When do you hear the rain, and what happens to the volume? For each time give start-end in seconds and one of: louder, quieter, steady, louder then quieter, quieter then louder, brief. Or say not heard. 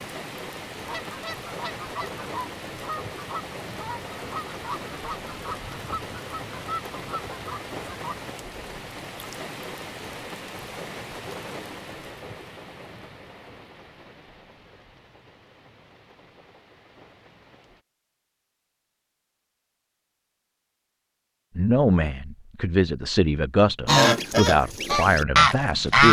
0.0-17.9 quieter.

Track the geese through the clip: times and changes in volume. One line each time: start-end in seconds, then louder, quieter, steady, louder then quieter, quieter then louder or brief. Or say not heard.
0.8-8.2 steady
23.9-26.0 brief.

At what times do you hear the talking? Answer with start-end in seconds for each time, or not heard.
21.6-26.0.